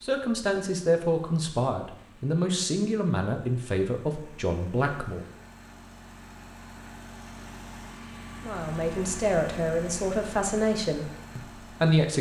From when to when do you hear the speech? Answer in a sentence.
The speech can be heard from 0.0 to 5.2 s and from 8.4 to 12.1 s.